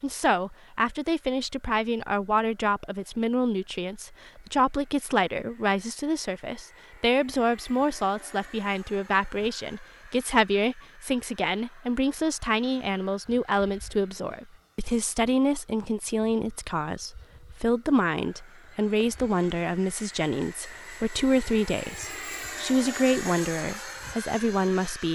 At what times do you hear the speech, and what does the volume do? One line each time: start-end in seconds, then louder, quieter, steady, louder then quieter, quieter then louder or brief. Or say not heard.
0.0-25.1 steady.